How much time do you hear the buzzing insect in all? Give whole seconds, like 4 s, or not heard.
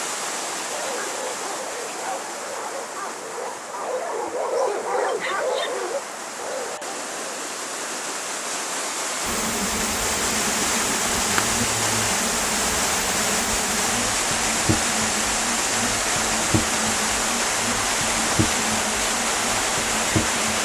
11 s.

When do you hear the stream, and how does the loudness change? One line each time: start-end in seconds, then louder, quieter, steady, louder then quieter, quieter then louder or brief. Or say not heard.
0.0-20.5 louder.